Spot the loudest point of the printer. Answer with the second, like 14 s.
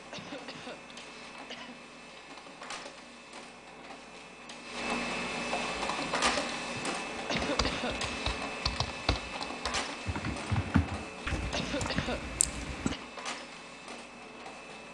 6 s.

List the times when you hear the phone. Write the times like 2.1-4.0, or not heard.
not heard.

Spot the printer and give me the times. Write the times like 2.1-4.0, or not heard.
0.0-14.8.